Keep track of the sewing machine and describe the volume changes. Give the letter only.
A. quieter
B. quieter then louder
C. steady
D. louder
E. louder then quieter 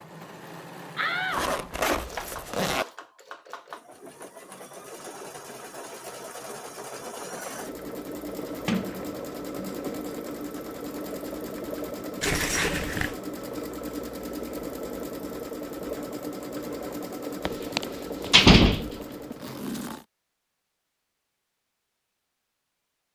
D.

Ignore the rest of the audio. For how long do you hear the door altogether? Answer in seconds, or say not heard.
4 s.